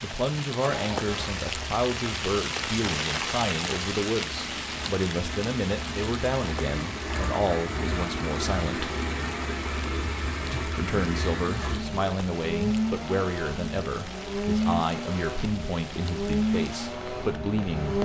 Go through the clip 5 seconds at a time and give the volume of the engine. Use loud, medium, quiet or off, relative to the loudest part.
medium, loud, loud, loud.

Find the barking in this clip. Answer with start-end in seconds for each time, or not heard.
not heard.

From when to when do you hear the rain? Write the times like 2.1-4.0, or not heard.
0.0-18.0.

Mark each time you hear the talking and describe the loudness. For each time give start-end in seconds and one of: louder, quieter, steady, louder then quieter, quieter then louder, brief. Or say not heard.
0.0-8.9 steady
10.5-18.0 steady.